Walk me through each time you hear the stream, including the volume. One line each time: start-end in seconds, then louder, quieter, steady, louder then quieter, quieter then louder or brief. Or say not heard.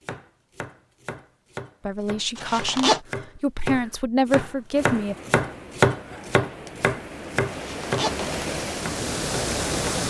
4.7-10.0 louder.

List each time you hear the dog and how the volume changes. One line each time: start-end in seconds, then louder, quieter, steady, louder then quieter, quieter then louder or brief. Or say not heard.
not heard.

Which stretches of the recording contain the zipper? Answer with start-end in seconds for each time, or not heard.
2.4-3.0, 7.5-8.3.